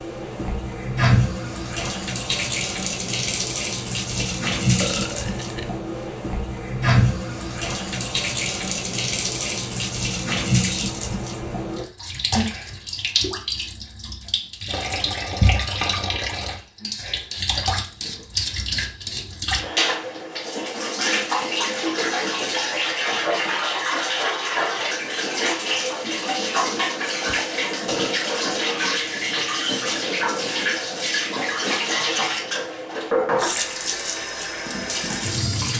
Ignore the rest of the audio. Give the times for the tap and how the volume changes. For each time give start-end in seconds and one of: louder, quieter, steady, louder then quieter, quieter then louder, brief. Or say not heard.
0.0-35.7 steady.